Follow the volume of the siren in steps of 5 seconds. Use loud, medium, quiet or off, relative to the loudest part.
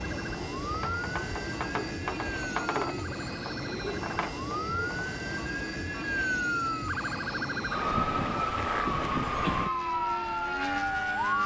medium, loud, loud.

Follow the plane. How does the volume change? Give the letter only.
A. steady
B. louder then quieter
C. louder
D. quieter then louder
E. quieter
A.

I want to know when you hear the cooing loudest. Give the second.
3 s.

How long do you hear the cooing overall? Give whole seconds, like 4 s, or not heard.
5 s.